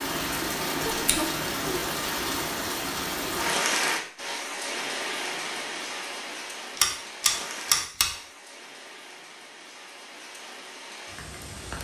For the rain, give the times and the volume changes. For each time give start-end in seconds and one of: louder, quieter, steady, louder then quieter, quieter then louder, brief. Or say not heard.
0.0-11.7 quieter.